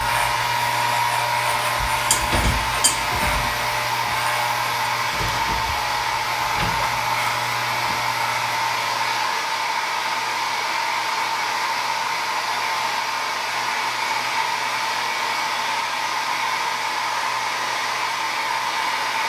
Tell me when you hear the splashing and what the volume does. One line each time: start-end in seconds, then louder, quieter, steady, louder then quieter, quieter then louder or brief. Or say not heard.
not heard.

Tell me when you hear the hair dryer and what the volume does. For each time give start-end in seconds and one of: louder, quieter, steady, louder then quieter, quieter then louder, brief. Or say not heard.
0.0-19.2 steady.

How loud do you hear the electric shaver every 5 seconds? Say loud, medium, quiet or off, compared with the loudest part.
loud, loud, off, off.